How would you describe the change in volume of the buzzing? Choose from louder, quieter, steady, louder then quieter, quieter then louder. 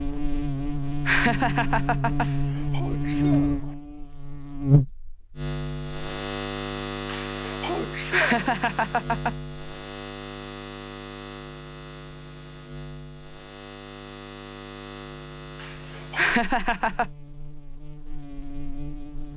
quieter.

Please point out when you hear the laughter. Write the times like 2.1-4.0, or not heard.
1.1-2.3, 8.1-9.3, 16.1-17.1.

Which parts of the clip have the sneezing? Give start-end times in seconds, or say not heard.
2.2-3.8, 7.0-8.3, 15.6-16.4.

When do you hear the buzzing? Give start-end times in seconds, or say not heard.
0.0-19.3.